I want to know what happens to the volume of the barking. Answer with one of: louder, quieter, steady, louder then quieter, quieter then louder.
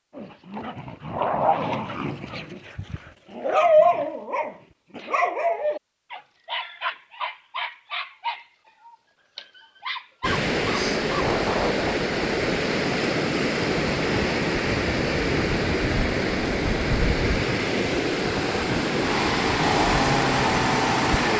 louder then quieter.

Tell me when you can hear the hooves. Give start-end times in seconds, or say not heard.
not heard.